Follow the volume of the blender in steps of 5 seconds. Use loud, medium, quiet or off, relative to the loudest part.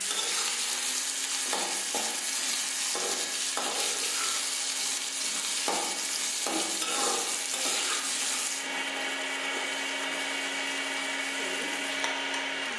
medium, medium, loud.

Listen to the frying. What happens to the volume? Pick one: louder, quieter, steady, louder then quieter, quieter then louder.
quieter.